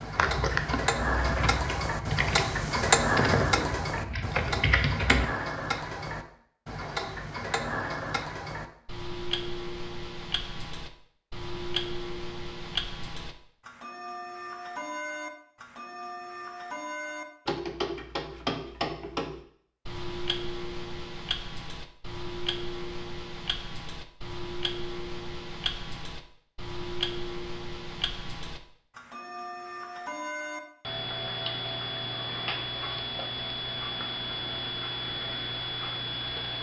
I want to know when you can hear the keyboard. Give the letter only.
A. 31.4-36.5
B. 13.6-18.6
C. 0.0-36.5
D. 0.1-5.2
D.